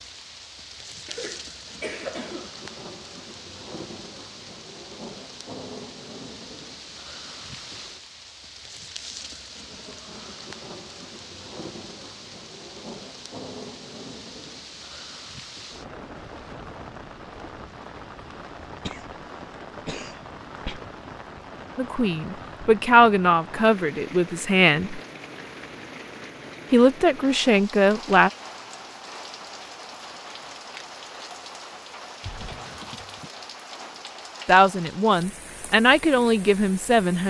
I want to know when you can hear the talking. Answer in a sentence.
The talking can be heard from 21.8 to 25.0 s, from 26.7 to 28.3 s and from 34.5 to 37.2 s.